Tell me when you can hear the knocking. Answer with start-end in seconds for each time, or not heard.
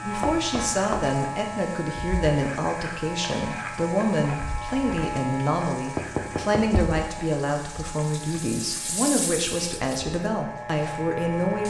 0.2-1.1, 6.0-7.0.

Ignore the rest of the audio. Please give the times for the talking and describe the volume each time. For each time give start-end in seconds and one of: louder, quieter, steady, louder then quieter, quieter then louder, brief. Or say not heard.
0.0-11.6 steady.